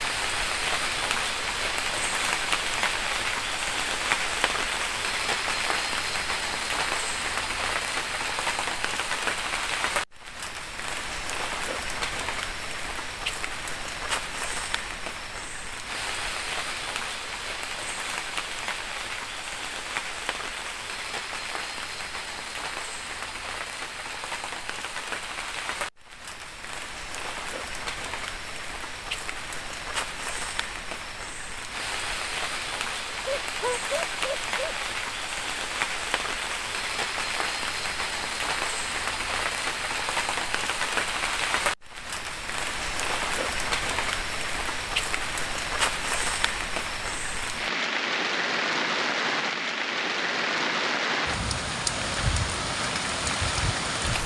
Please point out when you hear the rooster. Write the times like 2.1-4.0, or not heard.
not heard.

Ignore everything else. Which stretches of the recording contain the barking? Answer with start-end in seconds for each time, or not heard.
33.2-34.8.